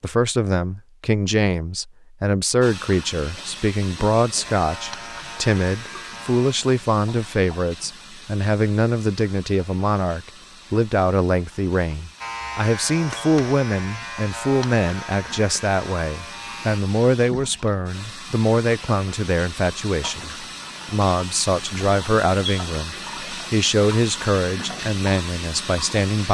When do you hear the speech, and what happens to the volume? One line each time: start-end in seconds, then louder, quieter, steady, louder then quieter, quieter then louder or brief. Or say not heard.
0.0-26.2 steady.